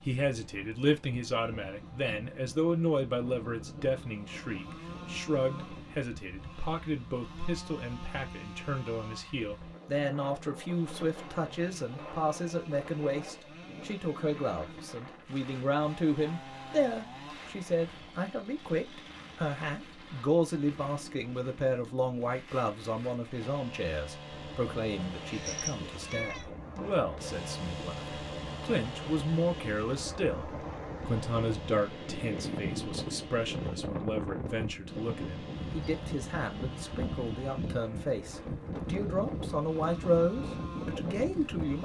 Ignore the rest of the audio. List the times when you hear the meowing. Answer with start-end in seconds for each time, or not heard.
25.2-26.4.